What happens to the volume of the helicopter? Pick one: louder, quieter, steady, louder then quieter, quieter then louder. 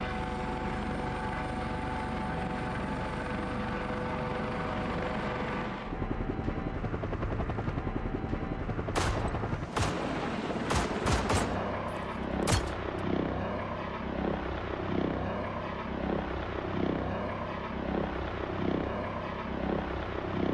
steady.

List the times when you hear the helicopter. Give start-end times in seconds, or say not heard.
0.0-20.4.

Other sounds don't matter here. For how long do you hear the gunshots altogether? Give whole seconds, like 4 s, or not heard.
4 s.